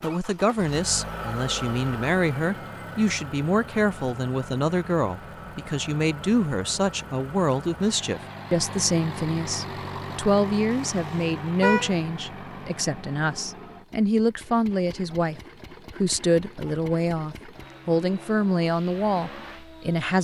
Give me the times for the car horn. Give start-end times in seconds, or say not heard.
10.8-11.9.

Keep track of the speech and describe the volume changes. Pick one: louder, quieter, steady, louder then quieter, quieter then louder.
steady.